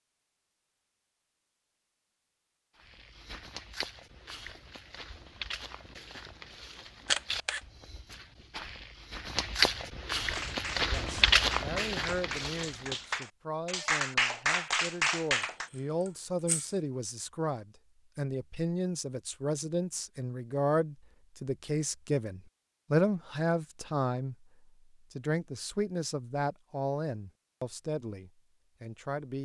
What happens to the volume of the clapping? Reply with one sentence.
The volume of the clapping goes up.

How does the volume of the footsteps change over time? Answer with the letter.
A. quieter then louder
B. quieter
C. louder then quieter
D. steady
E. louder
E.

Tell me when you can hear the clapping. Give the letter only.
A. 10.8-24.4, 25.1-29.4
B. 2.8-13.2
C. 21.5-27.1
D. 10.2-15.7
D.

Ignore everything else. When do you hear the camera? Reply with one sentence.
You can hear the camera from 7.0 to 7.6 s and from 16.1 to 16.7 s.